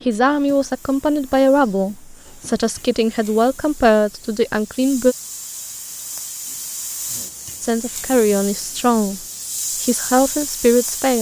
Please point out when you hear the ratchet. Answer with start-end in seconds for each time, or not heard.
not heard.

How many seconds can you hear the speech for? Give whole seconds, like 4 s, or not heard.
8 s.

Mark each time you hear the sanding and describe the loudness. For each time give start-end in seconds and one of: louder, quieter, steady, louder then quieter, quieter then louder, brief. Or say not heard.
not heard.